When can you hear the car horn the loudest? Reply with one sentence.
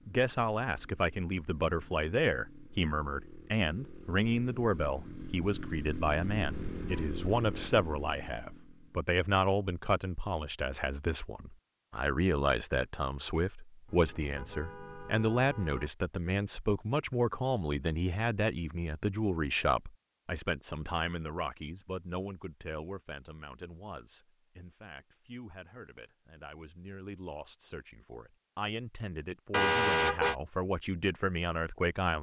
The volume of the car horn peaks at 30 seconds.